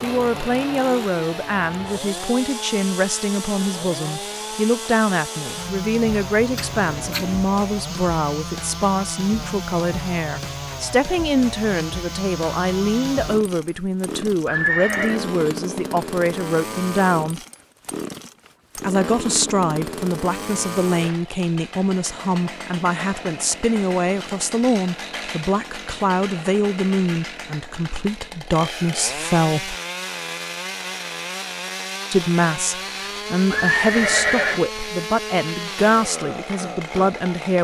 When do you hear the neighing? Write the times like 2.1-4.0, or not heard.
6.3-7.5, 14.4-15.2, 33.5-34.6.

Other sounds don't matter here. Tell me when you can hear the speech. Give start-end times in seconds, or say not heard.
0.0-17.4, 18.8-29.8, 32.1-37.6.